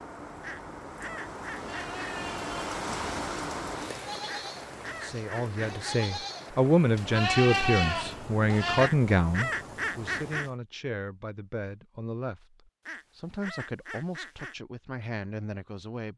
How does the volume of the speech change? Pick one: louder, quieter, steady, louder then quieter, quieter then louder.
quieter.